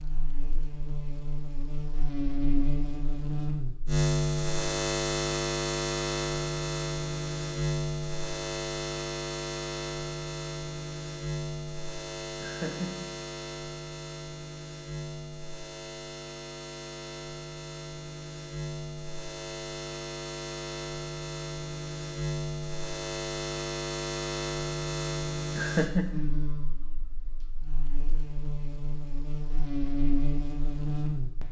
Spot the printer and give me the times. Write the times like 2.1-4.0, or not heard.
not heard.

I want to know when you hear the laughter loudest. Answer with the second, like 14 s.
26 s.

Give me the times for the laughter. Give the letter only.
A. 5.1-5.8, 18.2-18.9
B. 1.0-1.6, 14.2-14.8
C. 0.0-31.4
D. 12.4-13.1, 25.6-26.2
D.